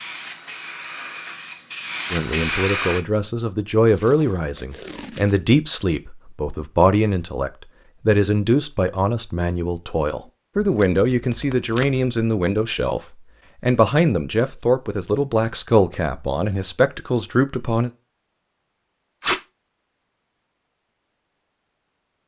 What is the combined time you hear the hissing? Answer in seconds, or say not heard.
3 s.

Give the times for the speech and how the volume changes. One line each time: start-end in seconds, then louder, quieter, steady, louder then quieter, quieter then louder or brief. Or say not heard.
2.1-17.9 steady.